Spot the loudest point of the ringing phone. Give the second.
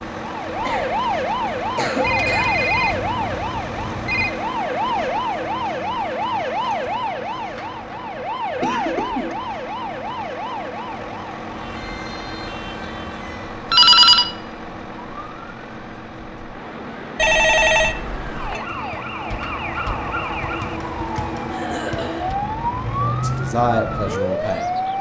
14 s.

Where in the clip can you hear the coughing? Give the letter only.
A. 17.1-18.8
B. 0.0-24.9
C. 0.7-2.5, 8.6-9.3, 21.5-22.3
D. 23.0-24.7
C.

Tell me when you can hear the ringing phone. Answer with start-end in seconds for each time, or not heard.
2.0-4.3, 13.7-14.2, 17.1-18.6.